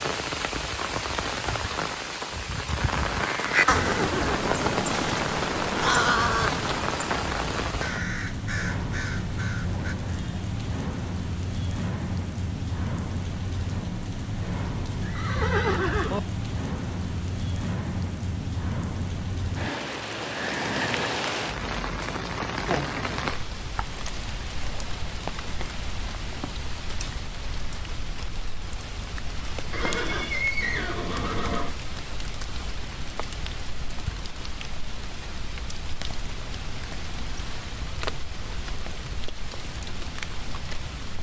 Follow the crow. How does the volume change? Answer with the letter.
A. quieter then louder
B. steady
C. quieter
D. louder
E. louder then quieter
C.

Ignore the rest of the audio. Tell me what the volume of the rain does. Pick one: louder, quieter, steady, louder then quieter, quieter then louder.
quieter.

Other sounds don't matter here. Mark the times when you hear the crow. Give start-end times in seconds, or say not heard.
3.1-9.9.